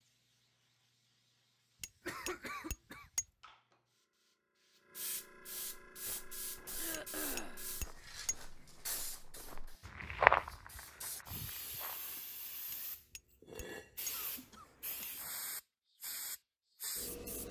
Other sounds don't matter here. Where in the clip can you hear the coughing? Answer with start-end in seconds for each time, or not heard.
2.0-3.1, 6.8-7.6, 14.1-15.1.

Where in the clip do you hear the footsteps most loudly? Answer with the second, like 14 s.
10 s.